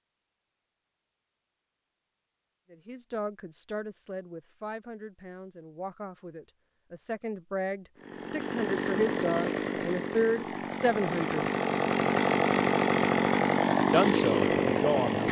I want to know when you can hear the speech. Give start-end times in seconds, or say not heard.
2.7-11.5, 13.9-15.2.